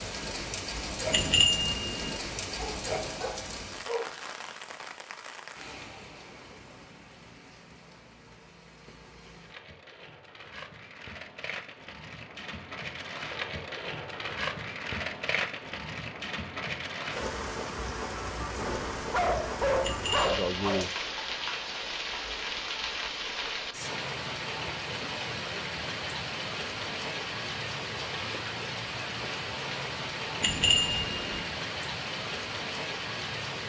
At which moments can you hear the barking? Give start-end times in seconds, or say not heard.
2.5-4.2, 18.6-20.9.